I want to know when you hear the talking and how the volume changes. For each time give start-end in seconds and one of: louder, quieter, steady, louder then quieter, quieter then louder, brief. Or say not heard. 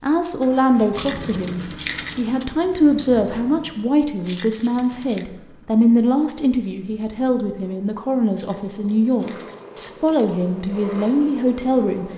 0.0-12.1 steady.